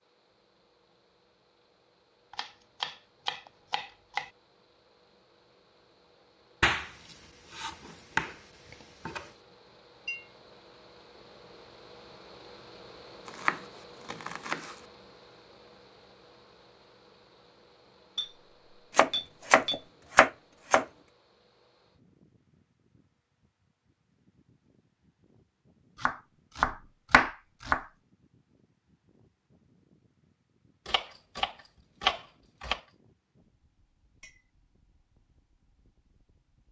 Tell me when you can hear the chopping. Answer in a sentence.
You can hear the chopping from 2.3 to 4.3 s, from 6.6 to 9.3 s, from 13.2 to 14.8 s, from 18.9 to 20.9 s, from 26.0 to 27.9 s and from 30.9 to 32.8 s.